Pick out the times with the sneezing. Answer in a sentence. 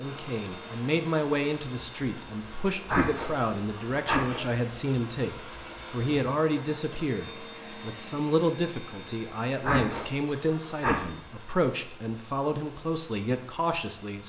The sneezing can be heard from 2.9 to 4.5 s and from 9.6 to 11.1 s.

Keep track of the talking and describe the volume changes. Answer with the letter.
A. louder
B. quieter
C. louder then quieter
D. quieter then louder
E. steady
E.